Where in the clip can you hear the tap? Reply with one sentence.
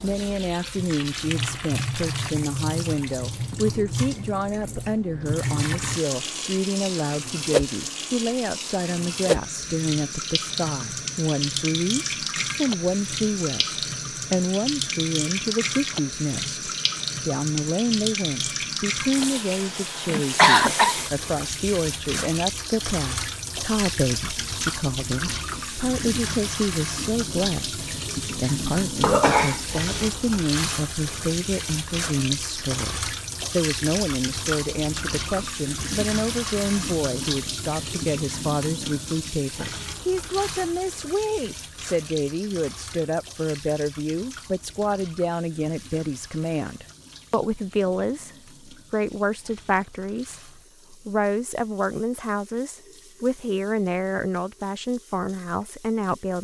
You can hear the tap from 0.0 to 56.3 s.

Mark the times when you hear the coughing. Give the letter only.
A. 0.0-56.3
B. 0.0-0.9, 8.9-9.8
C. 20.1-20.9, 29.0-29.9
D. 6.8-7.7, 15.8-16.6
C.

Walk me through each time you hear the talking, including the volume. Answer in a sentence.
You can hear the talking from 0.0 to 56.3 s, at a steady volume.